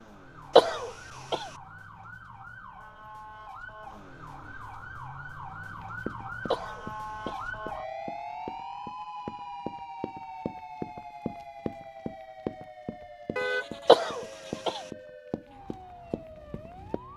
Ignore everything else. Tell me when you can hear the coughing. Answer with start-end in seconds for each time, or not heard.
0.6-1.4, 6.5-7.4, 13.8-14.8.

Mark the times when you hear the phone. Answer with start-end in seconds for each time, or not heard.
not heard.